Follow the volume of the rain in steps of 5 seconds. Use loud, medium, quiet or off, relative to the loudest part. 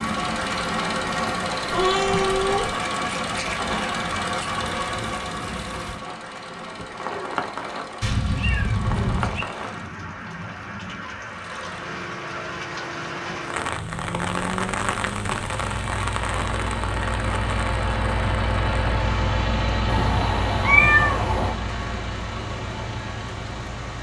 medium, loud, loud, loud, medium.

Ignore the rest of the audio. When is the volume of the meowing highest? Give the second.
21 s.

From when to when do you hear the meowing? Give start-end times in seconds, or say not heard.
1.7-2.8, 8.0-9.5, 19.9-21.6.